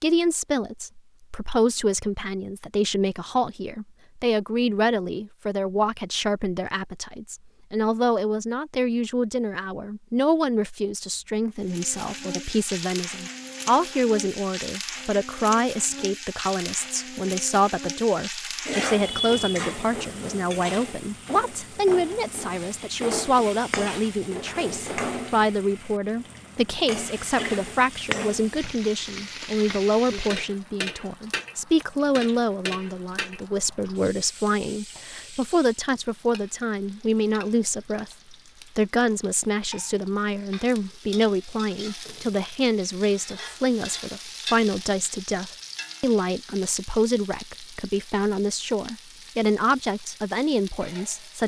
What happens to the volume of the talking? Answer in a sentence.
The volume of the talking stays about the same.